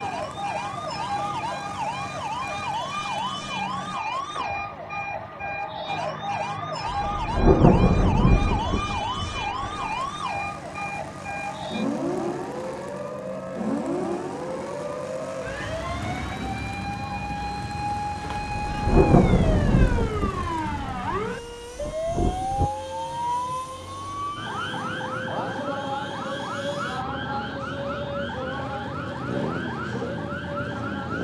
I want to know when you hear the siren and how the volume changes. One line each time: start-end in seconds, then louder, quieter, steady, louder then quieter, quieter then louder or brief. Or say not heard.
0.0-31.2 steady.